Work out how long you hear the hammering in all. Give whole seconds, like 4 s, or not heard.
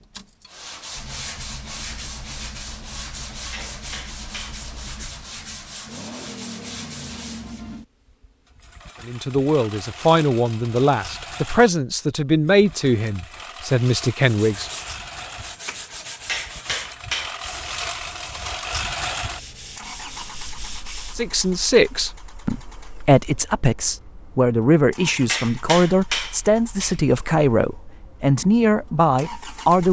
5 s.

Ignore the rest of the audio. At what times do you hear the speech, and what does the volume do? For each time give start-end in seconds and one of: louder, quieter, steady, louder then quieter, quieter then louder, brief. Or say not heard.
9.1-14.7 steady
21.1-29.8 steady.